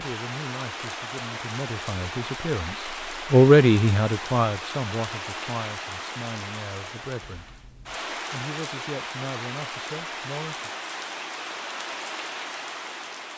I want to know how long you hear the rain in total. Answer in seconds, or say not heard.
13 s.